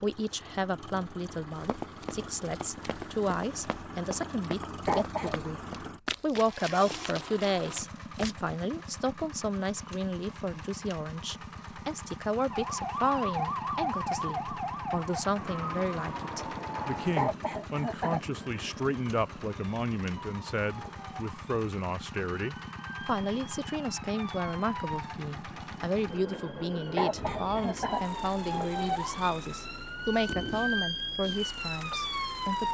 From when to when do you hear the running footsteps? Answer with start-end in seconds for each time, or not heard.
1.6-8.3.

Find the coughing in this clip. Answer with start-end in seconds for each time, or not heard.
4.8-5.5, 17.1-18.2, 26.9-28.0.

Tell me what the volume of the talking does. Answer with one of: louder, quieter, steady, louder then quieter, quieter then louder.
steady.